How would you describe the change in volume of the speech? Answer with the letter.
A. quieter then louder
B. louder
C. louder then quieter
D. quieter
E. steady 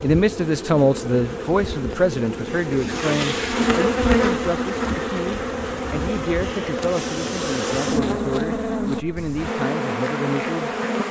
D.